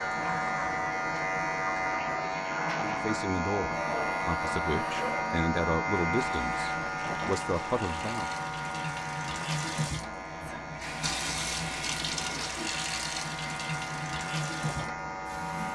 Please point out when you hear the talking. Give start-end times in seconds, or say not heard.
2.8-8.3.